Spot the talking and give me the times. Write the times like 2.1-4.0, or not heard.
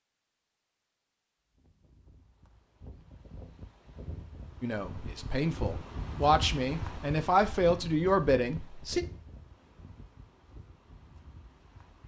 4.6-9.1.